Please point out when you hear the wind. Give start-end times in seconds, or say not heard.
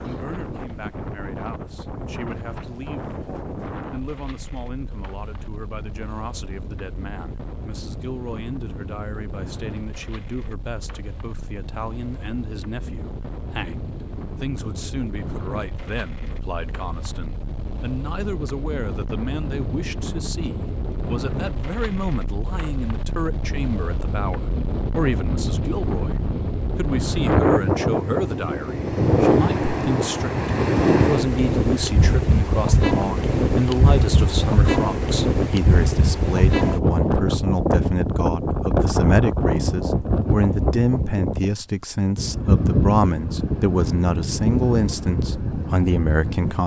0.0-46.6.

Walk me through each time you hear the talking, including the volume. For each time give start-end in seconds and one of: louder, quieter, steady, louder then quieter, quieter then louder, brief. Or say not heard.
0.0-46.6 louder.